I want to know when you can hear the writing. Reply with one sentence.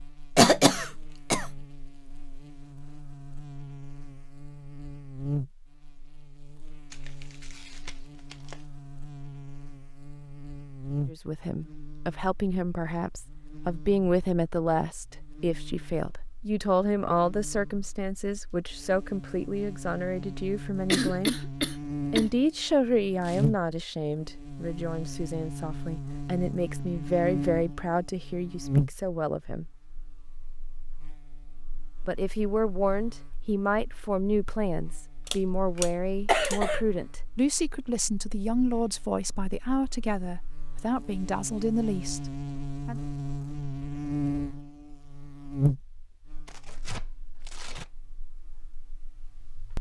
You can't hear the writing here.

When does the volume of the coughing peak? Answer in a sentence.
The volume of the coughing peaks at 1 second.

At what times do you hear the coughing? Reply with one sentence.
The coughing can be heard from 0.3 to 1.4 s, from 20.9 to 22.3 s and from 35.2 to 36.8 s.